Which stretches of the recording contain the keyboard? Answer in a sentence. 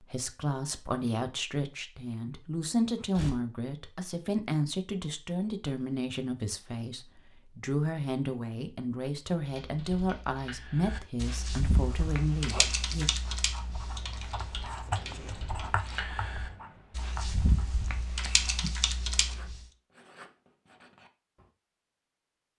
The keyboard can be heard from 9.3 to 19.6 s.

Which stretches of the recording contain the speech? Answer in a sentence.
You can hear the speech from 0.0 to 13.1 s.